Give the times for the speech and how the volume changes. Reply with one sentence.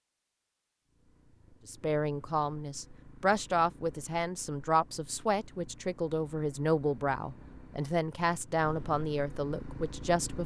You can hear the speech from 1.6 to 10.4 s, at a steady volume.